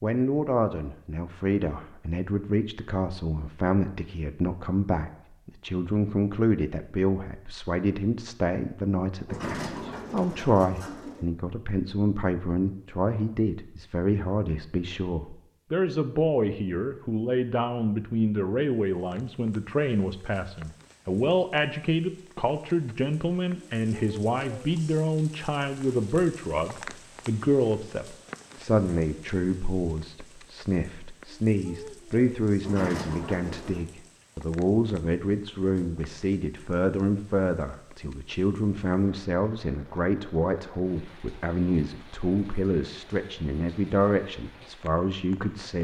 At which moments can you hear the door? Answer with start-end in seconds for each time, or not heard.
9.2-11.2, 32.6-33.9.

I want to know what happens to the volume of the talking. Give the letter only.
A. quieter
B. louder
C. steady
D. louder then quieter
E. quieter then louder
C.